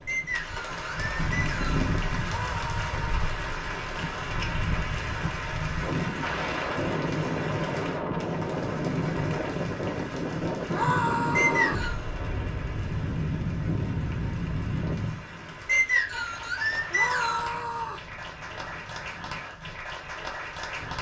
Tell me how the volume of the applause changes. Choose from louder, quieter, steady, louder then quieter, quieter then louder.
quieter then louder.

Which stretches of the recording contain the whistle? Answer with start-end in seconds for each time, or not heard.
0.1-1.9, 11.3-12.1, 15.7-17.5.